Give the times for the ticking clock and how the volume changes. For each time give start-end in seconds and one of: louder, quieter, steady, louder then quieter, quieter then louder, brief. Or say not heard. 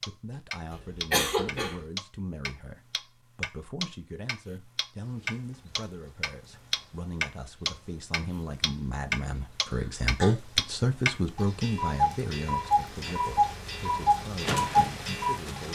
0.0-15.6 louder.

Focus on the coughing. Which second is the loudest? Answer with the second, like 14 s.
1 s.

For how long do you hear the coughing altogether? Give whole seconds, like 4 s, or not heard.
2 s.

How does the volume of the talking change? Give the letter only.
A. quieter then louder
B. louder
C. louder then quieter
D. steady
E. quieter
C.